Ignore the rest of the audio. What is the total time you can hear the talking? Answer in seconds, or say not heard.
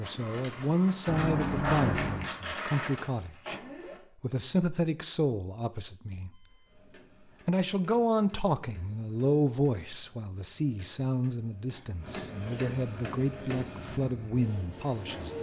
14 s.